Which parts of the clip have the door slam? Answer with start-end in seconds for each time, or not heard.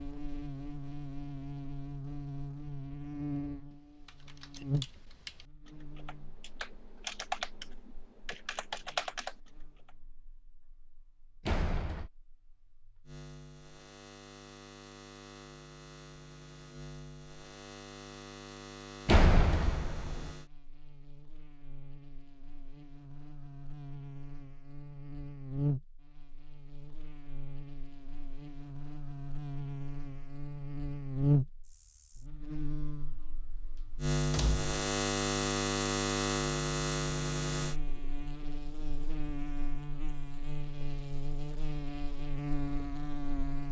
11.4-12.1, 19.1-20.3, 34.3-34.7.